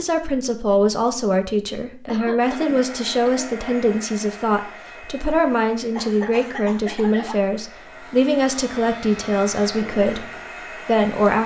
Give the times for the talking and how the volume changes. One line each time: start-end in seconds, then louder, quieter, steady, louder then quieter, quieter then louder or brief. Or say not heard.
0.0-11.4 steady.